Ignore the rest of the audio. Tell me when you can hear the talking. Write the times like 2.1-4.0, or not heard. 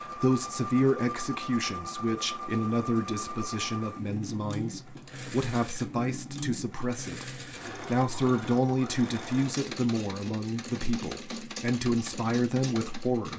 0.0-13.3.